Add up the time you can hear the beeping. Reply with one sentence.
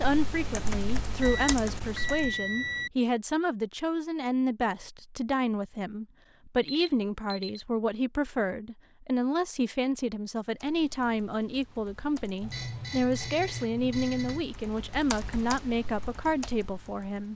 You can hear the beeping for 5 seconds altogether.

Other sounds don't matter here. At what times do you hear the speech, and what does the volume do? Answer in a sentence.
The speech can be heard from 0.0 to 17.3 s, at a steady volume.